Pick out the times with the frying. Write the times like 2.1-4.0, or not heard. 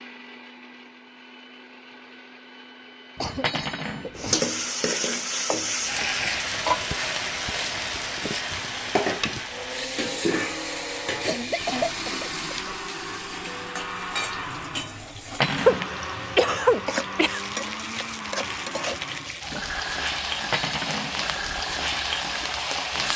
4.2-23.1.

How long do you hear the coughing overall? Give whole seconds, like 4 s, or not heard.
5 s.